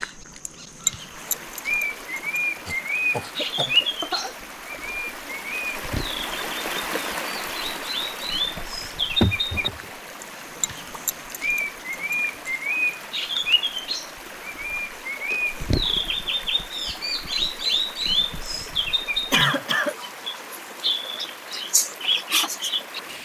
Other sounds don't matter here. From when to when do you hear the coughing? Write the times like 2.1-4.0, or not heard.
2.6-4.3, 9.2-9.9, 19.3-19.9.